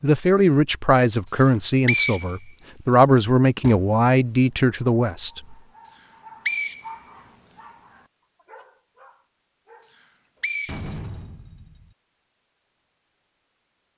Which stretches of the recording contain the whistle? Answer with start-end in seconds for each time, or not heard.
1.4-3.0, 5.9-7.5, 9.9-11.1.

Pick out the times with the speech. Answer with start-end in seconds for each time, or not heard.
0.0-5.5.